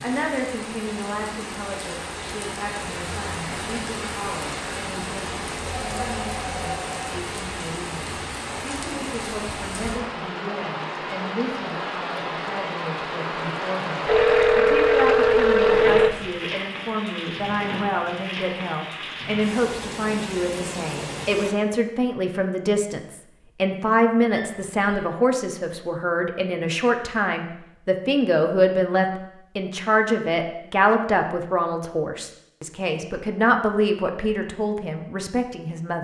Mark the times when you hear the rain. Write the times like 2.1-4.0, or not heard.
0.0-21.6.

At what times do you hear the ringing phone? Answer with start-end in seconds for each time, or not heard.
5.8-7.0, 14.1-16.2, 24.3-25.1.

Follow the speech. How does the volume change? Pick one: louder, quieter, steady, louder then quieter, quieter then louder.
louder.